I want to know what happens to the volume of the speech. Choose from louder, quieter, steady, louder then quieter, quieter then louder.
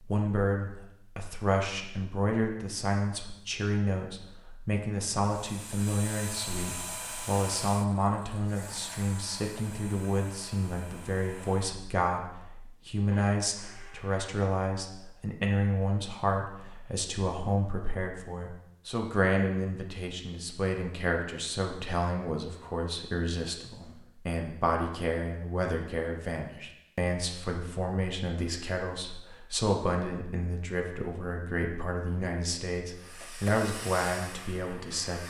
steady.